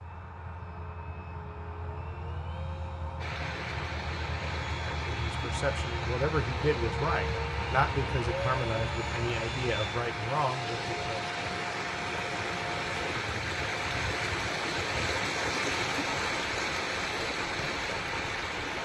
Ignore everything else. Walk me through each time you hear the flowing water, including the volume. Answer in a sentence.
You can hear the flowing water from 3.1 to 18.8 s, getting louder.